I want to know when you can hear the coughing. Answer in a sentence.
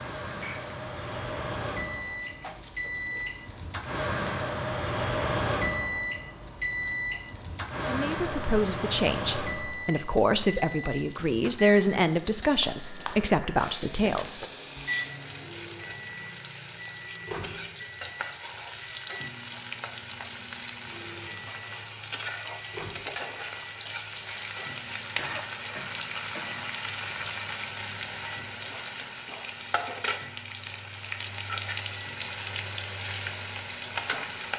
You can hear the coughing from 25.1 to 26.6 s.